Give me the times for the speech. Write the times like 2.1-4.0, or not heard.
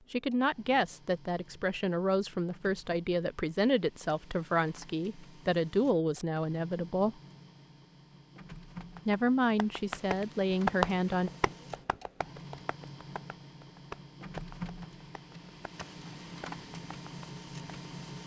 0.1-7.2, 9.1-11.3.